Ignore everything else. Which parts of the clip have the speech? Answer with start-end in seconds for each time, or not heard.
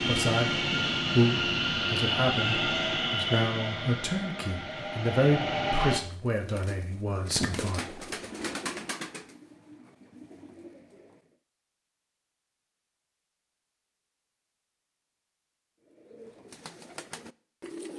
0.0-8.0.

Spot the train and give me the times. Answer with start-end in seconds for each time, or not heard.
0.0-6.0.